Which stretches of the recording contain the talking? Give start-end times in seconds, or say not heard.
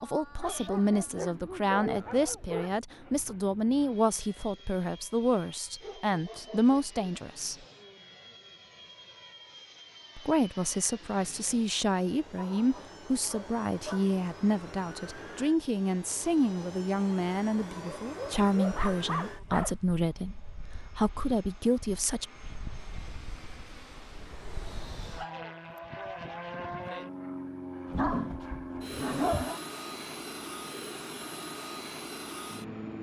0.0-7.5, 10.2-22.2.